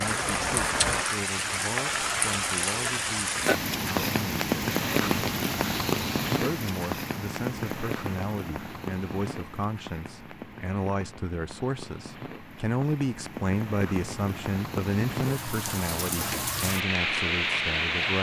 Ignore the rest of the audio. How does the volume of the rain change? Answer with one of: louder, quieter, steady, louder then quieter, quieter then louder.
quieter then louder.